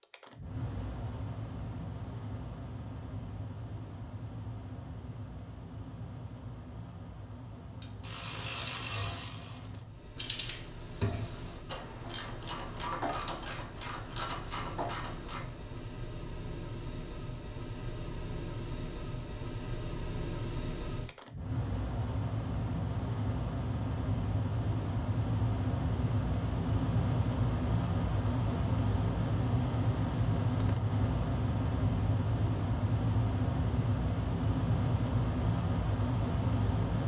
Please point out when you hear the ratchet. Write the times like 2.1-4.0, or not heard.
7.8-15.7.